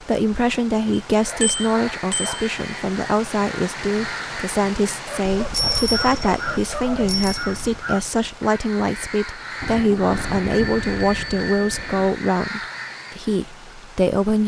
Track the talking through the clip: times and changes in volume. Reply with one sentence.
You can hear the talking from 0.1 to 14.4 s, at a steady volume.